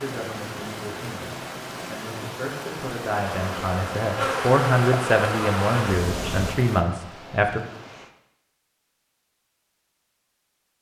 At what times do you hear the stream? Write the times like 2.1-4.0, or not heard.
0.0-8.2.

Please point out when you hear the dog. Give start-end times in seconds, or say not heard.
not heard.